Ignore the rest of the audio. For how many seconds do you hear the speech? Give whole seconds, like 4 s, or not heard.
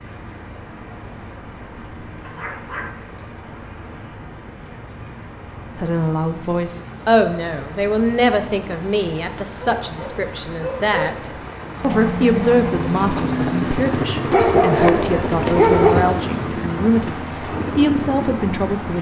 13 s.